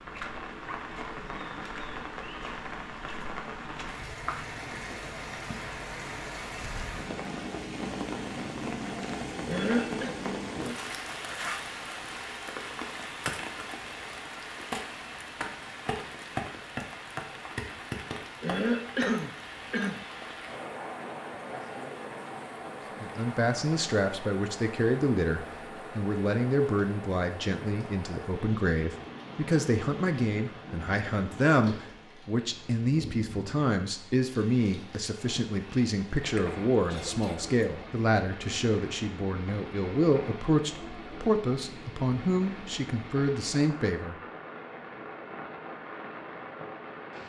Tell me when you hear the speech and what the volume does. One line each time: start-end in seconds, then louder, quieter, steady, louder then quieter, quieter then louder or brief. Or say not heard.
23.0-44.1 steady.